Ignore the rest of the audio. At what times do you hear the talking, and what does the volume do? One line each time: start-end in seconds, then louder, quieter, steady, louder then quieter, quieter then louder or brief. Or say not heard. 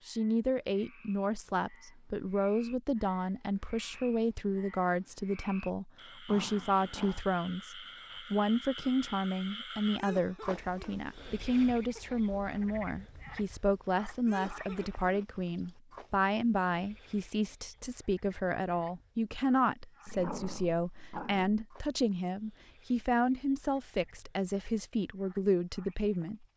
0.1-26.4 steady.